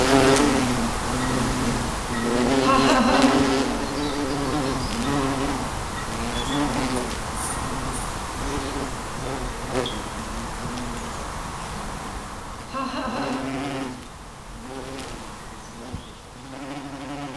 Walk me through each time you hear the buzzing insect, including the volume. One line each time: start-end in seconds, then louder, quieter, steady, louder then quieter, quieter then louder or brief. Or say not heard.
0.0-17.3 quieter.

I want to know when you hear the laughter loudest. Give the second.
3 s.